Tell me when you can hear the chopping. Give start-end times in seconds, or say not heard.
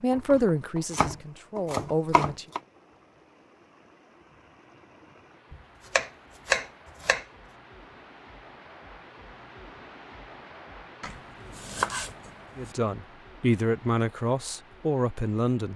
0.1-2.6, 5.5-7.2, 11.0-12.8.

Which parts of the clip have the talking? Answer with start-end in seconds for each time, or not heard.
0.0-2.5, 12.6-15.7.